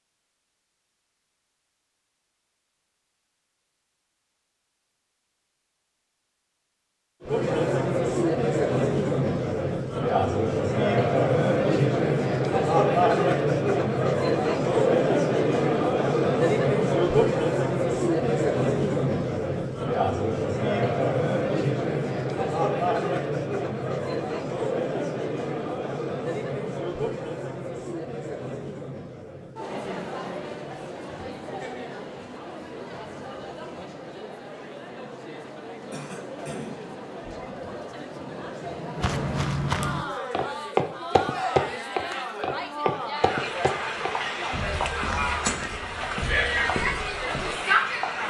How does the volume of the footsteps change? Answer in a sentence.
The loudness of the footsteps goes down.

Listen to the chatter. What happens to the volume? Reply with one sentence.
The loudness of the chatter goes down, then up.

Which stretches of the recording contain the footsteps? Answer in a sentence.
You can hear the footsteps from 39.0 to 47.5 s.